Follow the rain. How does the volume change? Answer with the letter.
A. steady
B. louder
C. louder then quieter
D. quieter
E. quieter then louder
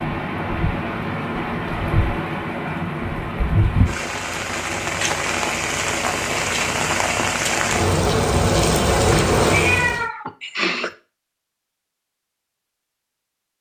B.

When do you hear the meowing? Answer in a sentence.
The meowing can be heard from 8.9 to 10.9 s.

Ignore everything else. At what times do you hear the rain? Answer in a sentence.
The rain can be heard from 0.0 to 10.1 s.